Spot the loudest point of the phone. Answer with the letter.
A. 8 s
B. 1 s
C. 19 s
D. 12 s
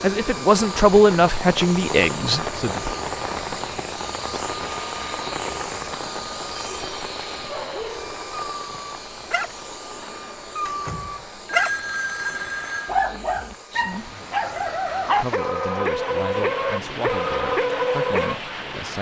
D.